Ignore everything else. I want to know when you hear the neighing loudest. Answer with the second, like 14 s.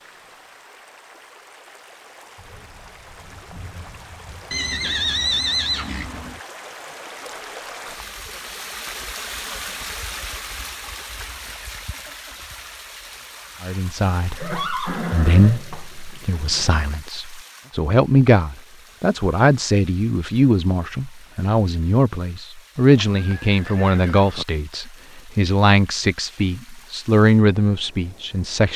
5 s.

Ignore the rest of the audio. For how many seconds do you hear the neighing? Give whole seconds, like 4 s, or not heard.
5 s.